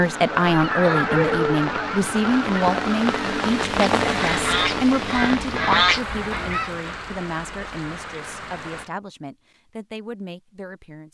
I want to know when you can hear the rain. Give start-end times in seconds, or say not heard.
0.0-8.9.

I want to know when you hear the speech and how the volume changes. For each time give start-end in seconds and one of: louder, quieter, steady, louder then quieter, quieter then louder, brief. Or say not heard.
0.0-11.0 quieter.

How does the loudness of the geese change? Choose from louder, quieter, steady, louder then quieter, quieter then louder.
quieter then louder.